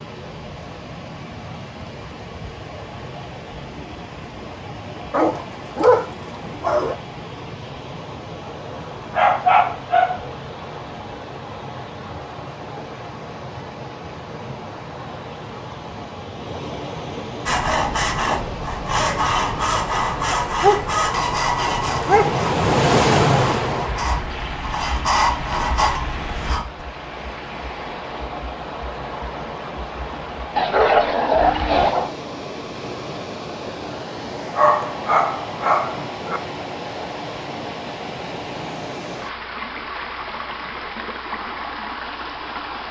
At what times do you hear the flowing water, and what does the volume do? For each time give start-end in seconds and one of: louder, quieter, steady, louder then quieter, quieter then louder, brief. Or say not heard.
0.0-42.8 louder then quieter.